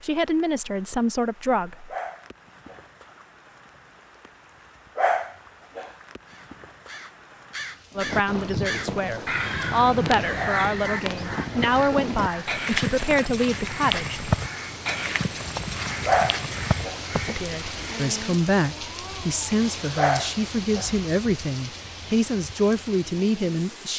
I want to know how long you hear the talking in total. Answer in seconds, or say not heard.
15 s.